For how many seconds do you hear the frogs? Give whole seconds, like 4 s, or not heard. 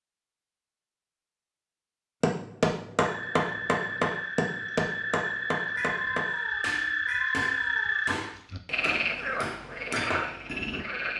8 s.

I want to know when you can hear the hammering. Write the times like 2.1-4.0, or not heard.
2.2-10.8.